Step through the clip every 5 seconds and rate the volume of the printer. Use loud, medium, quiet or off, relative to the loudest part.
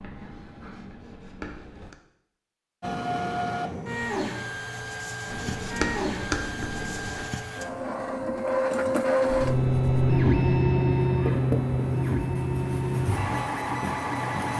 medium, loud, loud.